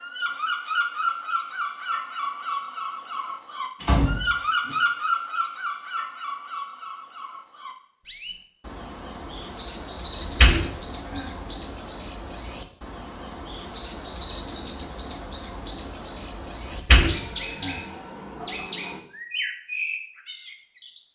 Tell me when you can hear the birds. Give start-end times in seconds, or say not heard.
0.0-21.1.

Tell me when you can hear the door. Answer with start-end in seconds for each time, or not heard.
3.8-4.8, 10.2-11.3, 16.7-17.8.